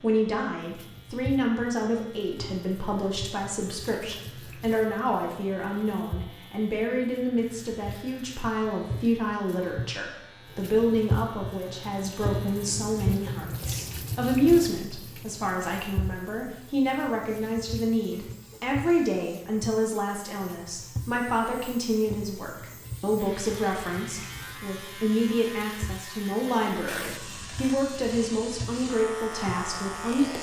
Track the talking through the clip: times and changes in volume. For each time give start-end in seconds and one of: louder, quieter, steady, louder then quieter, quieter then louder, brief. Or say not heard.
0.0-30.3 steady.